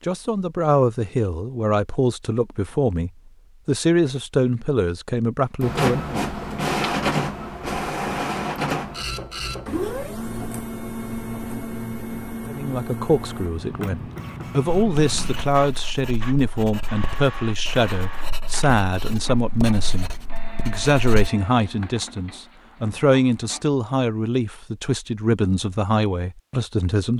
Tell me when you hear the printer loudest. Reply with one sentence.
The volume of the printer peaks at 7 seconds.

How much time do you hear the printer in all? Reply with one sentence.
The printer can be heard for 18 seconds in total.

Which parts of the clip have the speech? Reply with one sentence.
You can hear the speech from 0.0 to 6.2 s and from 12.4 to 27.1 s.